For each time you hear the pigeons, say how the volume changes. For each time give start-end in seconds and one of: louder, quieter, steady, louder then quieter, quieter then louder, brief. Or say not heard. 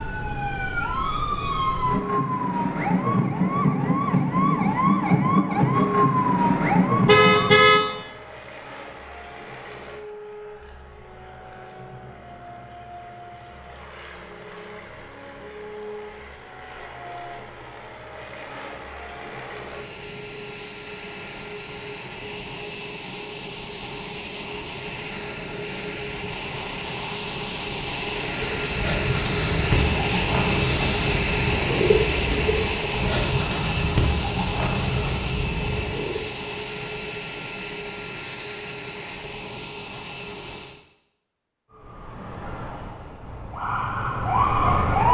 28.6-36.2 steady.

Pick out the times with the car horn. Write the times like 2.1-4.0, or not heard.
7.0-7.8.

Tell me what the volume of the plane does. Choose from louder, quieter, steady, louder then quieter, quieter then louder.
louder then quieter.